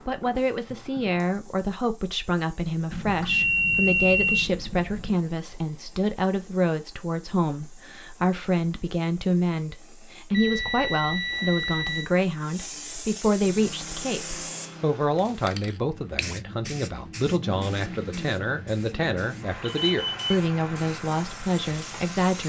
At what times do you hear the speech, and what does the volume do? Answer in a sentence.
The speech can be heard from 0.1 to 22.4 s, at a steady volume.